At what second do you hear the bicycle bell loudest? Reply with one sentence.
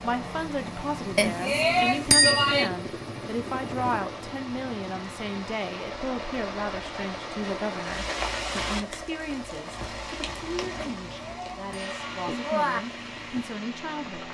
The loudest moment of the bicycle bell is at 2 seconds.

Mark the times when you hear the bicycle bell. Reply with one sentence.
The bicycle bell can be heard from 1.1 to 2.7 s and from 10.8 to 12.8 s.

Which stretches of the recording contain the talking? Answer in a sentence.
You can hear the talking from 0.0 to 14.2 s.